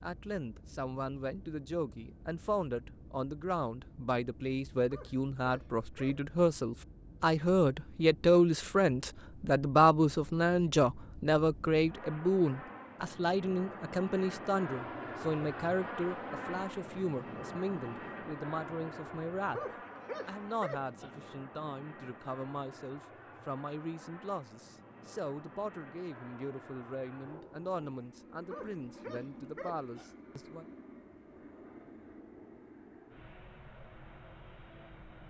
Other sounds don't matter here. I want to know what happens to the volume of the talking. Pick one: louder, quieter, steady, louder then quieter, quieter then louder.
louder then quieter.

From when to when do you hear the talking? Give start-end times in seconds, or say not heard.
0.0-19.6, 20.2-30.6.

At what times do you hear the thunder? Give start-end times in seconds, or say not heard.
not heard.